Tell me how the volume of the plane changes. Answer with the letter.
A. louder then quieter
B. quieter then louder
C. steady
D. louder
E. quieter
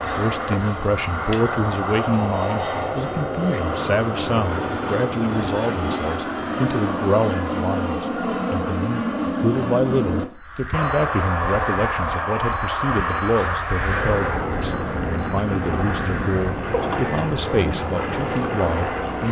C.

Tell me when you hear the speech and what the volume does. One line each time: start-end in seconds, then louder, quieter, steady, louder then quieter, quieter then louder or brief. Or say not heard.
0.0-19.2 steady.